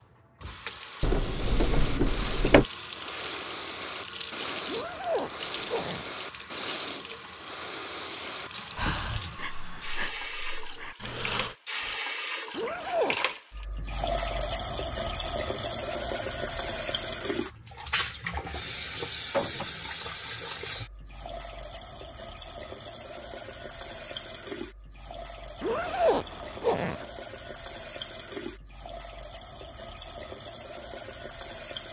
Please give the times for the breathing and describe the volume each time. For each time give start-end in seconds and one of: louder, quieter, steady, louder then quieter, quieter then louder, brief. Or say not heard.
1.1-11.9 quieter.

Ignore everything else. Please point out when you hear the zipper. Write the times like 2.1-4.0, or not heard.
4.7-6.2, 12.5-13.3, 25.6-27.1.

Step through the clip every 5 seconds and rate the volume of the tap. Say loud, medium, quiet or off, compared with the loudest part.
medium, medium, loud, loud, medium, medium, medium.